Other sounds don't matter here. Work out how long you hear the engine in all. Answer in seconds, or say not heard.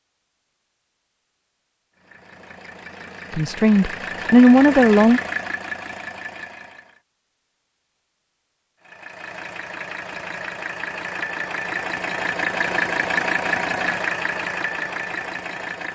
12 s.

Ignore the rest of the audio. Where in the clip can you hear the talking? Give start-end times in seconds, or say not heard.
3.3-5.2.